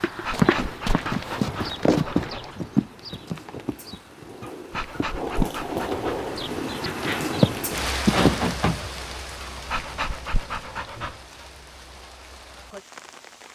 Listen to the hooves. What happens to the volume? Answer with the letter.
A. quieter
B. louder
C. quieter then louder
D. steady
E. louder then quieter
C.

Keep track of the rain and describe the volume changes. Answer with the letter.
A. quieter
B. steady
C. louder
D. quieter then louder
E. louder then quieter
E.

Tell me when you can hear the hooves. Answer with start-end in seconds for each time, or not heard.
0.0-8.9.